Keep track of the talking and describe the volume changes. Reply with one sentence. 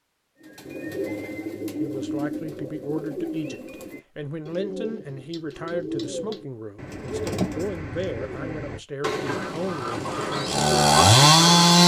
The volume of the talking stays about the same.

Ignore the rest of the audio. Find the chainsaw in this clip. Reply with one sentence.
The chainsaw can be heard from 9.3 to 11.8 s.